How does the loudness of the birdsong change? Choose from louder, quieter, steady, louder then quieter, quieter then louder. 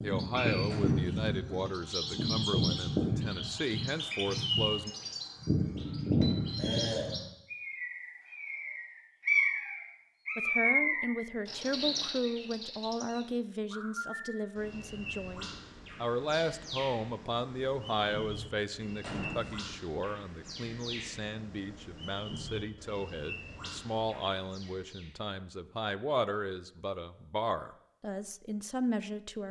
quieter.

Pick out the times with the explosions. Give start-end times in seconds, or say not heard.
0.7-1.2, 19.0-19.7.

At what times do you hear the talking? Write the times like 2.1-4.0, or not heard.
0.0-4.9, 10.3-29.4.